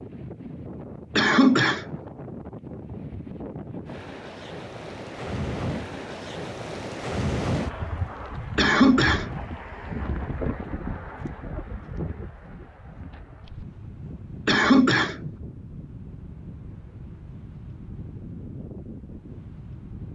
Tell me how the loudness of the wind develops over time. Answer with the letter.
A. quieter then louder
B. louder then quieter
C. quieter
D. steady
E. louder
B.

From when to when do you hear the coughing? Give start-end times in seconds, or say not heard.
1.1-2.0, 8.6-9.4, 14.4-15.3.